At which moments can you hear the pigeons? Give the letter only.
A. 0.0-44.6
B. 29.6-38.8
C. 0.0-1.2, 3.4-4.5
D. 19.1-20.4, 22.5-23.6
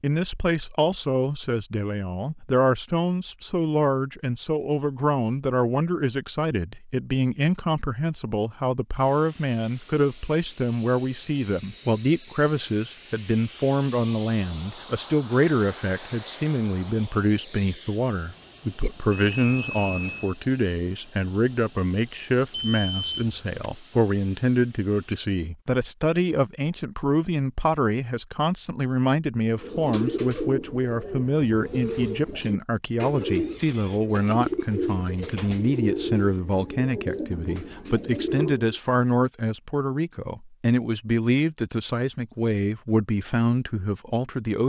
B.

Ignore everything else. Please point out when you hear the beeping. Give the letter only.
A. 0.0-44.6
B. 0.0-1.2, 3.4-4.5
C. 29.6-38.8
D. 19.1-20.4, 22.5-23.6
D.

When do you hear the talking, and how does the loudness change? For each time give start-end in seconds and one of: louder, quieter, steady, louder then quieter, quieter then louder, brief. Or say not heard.
0.0-44.6 steady.